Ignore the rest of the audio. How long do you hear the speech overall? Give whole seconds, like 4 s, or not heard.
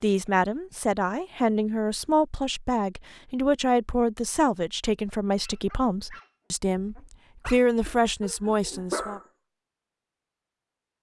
9 s.